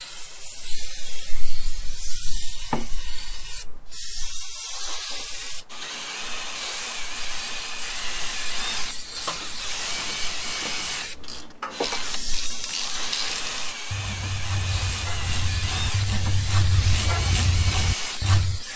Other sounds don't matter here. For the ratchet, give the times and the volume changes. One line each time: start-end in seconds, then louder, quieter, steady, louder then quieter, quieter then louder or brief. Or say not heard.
9.0-18.6 louder.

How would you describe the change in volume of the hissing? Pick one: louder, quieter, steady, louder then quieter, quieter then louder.
steady.